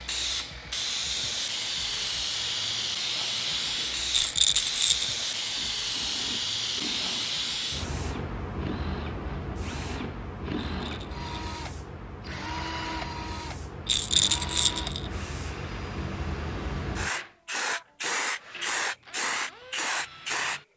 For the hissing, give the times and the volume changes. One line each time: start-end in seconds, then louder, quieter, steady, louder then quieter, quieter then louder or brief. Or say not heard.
0.0-20.7 quieter then louder.